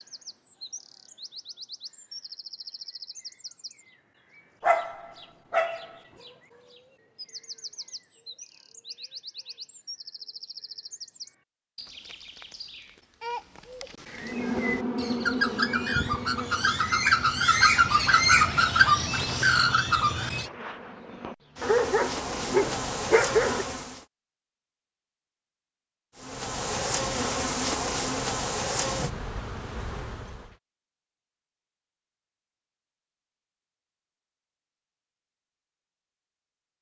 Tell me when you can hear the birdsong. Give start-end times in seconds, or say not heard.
0.0-20.5.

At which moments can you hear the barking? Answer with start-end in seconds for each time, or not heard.
4.6-5.8, 21.6-23.6.